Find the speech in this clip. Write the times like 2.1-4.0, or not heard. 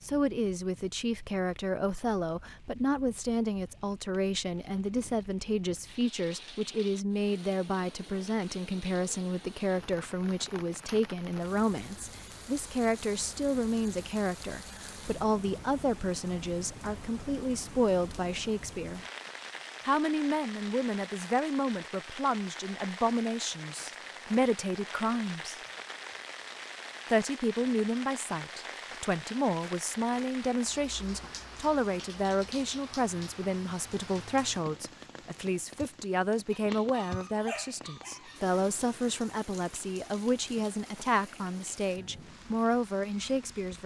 0.0-19.1, 19.9-25.6, 27.1-43.8.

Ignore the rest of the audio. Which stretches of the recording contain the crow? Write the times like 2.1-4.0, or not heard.
not heard.